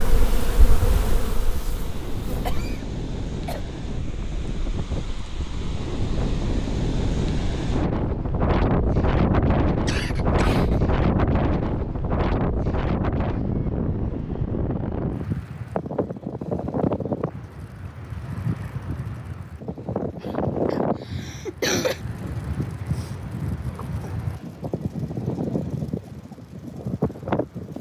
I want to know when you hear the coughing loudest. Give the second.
22 s.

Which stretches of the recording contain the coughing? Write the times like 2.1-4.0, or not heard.
2.4-3.6, 9.8-10.8, 20.2-22.0.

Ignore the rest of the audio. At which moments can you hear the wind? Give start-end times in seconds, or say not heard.
0.0-27.7.